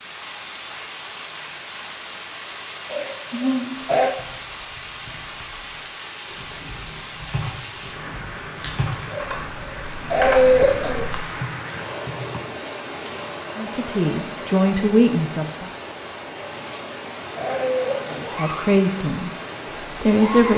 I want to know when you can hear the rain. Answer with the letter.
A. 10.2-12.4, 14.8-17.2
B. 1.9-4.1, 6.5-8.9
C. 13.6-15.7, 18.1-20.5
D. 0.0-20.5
D.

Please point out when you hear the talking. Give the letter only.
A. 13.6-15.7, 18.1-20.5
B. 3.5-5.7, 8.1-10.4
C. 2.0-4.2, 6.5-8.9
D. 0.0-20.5
A.